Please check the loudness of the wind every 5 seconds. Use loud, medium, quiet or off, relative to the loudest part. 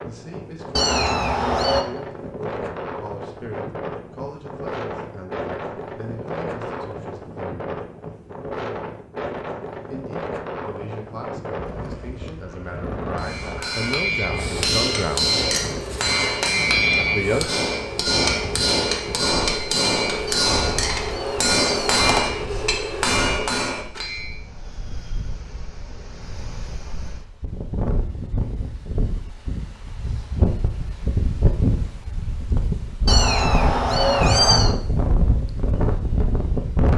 medium, medium, medium, medium, quiet, medium, loud, loud.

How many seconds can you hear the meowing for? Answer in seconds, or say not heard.
5 s.